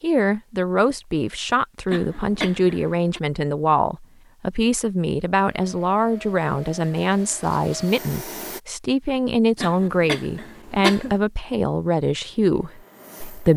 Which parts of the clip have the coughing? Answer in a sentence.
You can hear the coughing from 1.9 to 3.2 s and from 9.6 to 11.2 s.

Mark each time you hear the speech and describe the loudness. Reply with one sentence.
The speech can be heard from 0.0 to 13.5 s, at a steady volume.